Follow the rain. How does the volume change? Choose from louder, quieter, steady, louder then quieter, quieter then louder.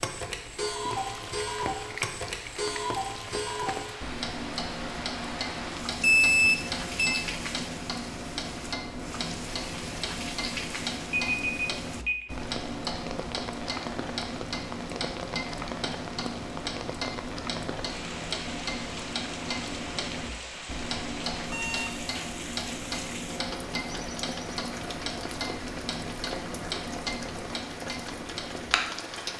steady.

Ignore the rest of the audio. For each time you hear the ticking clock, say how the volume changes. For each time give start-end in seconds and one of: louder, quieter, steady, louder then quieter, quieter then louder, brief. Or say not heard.
0.0-29.3 steady.